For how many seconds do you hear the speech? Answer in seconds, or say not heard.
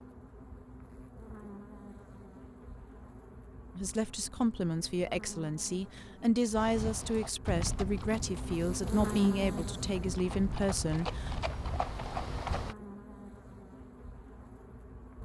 8 s.